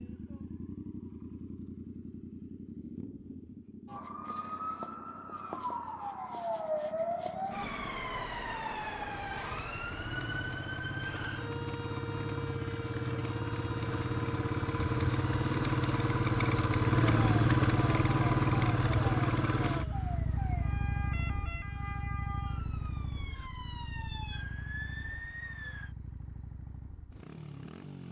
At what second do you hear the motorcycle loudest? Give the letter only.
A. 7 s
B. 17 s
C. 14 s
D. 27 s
B.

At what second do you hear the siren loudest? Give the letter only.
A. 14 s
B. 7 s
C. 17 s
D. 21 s
B.